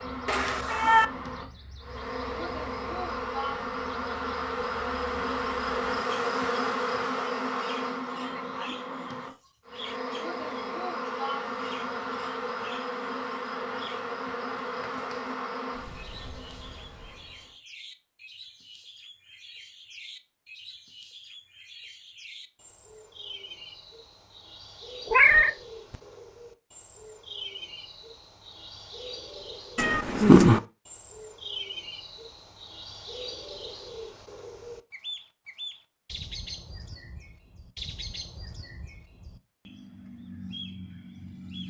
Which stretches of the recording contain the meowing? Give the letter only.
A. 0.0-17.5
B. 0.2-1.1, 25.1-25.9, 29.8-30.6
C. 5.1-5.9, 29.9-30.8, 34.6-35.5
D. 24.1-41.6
B.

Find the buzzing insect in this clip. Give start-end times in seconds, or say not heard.
0.0-17.5.